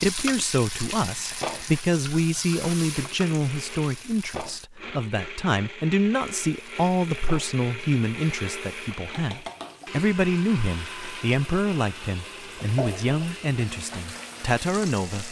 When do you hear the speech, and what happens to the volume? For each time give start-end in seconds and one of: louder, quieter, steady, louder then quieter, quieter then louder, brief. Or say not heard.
0.0-15.2 steady.